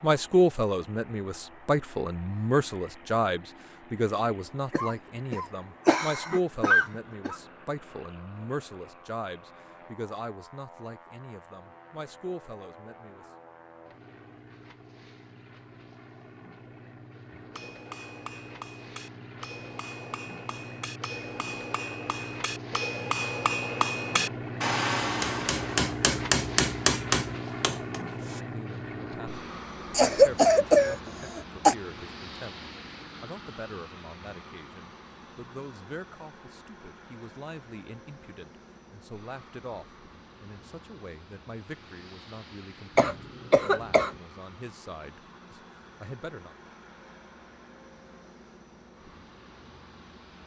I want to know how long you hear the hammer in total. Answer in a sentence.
The hammer can be heard for 11 seconds in total.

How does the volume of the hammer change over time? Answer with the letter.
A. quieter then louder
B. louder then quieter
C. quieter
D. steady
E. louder
E.